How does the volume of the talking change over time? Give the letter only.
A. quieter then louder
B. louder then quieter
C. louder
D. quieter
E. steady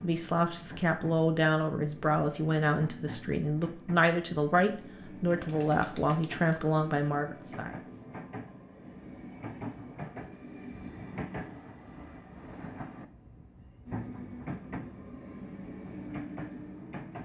E.